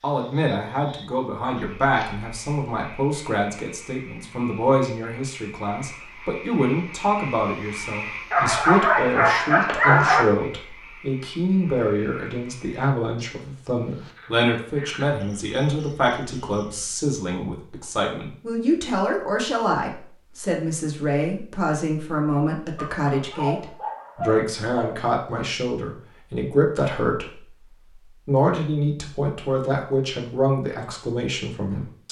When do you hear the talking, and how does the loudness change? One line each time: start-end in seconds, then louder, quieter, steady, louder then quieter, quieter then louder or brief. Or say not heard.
0.0-32.0 steady.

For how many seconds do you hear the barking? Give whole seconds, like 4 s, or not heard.
4 s.